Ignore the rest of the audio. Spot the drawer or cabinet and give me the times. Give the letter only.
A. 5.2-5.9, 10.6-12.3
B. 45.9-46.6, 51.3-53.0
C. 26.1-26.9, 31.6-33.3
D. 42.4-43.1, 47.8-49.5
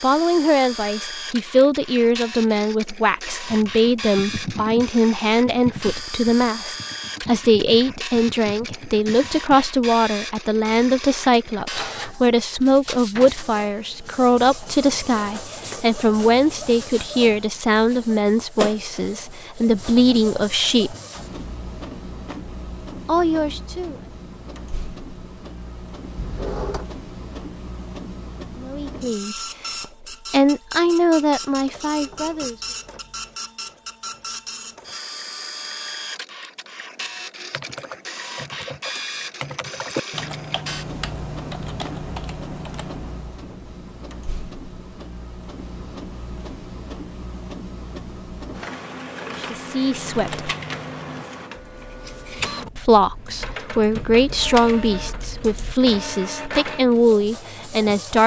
C.